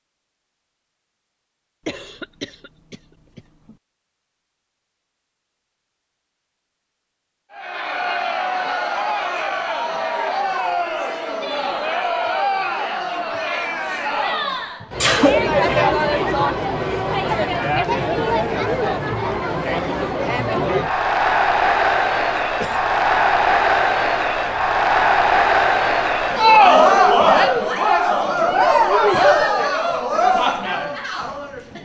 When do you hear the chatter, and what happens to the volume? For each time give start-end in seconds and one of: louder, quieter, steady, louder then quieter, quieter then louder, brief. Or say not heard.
7.5-31.8 louder.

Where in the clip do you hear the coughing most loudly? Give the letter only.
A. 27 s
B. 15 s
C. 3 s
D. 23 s
B.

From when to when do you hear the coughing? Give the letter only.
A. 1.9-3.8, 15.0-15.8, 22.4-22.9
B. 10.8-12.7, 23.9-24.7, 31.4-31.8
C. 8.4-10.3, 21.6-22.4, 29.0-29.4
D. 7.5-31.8
A.